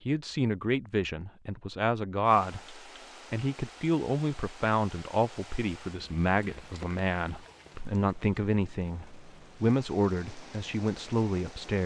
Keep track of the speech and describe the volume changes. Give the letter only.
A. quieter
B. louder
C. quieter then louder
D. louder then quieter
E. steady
E.